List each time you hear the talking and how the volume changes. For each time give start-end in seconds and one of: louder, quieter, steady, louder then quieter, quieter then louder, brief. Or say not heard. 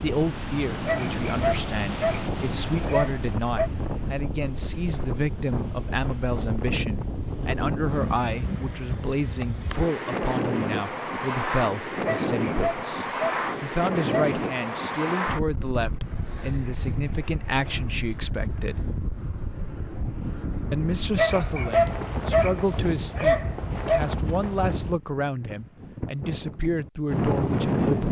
0.0-18.9 steady
20.7-27.9 steady.